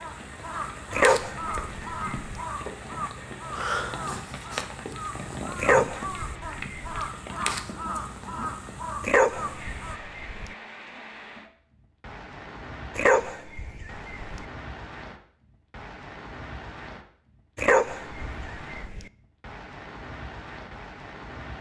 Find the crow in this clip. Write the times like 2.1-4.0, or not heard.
0.0-9.9.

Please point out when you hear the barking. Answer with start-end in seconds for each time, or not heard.
0.9-2.4, 5.5-7.1, 9.0-10.6, 12.9-14.4, 17.6-19.1.